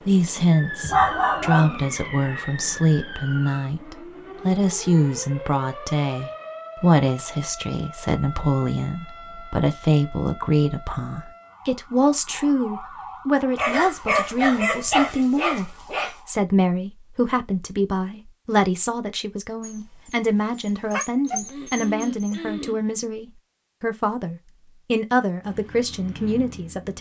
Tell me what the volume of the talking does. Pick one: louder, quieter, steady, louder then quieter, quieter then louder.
steady.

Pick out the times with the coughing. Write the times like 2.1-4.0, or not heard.
21.2-22.9.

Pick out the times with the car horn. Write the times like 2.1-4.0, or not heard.
not heard.